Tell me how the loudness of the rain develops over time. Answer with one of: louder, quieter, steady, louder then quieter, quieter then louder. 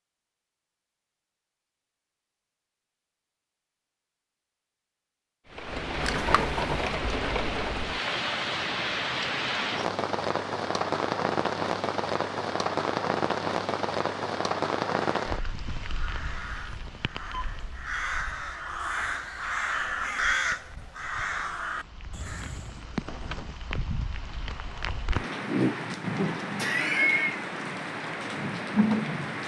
quieter then louder.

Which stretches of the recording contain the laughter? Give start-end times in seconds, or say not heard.
26.6-27.4.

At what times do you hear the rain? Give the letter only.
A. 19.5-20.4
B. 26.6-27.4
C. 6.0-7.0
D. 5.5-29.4
D.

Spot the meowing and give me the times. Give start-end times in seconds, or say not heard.
6.0-7.0.